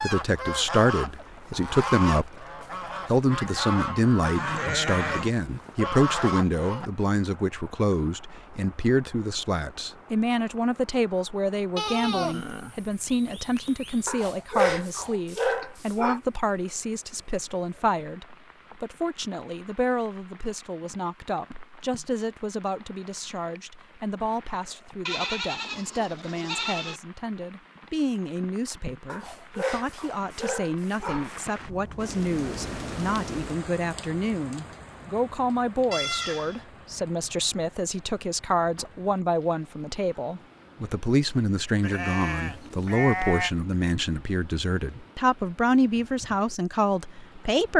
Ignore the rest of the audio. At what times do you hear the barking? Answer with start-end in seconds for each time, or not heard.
14.1-16.2, 29.1-31.4.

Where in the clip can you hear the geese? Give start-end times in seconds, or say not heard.
0.0-6.9.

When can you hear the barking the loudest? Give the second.
15 s.